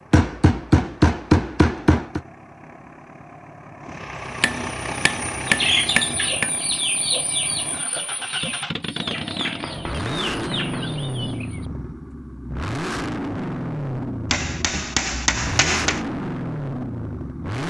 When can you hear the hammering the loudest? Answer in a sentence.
The volume of the hammering peaks at 1 second.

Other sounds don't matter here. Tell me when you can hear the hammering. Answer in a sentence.
You can hear the hammering from 0.1 to 2.2 s, from 4.4 to 6.5 s, from 8.9 to 10.9 s and from 14.3 to 16.0 s.